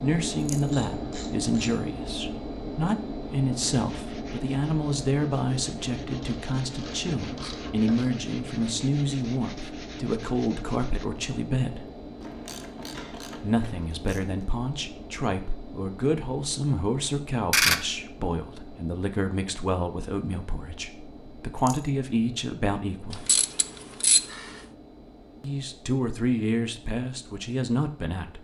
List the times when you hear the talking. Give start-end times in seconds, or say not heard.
0.0-11.9, 13.3-23.2, 25.4-28.3.